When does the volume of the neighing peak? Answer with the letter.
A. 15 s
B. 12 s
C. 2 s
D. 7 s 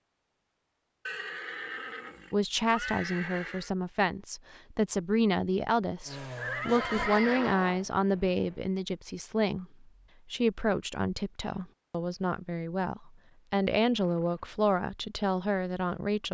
D.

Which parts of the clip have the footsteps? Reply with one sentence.
You can't hear the footsteps here.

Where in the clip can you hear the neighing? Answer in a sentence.
The neighing can be heard from 1.1 to 3.7 s, from 6.3 to 7.8 s and from 13.9 to 14.6 s.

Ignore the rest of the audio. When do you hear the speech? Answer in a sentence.
The speech can be heard from 2.3 to 16.2 s.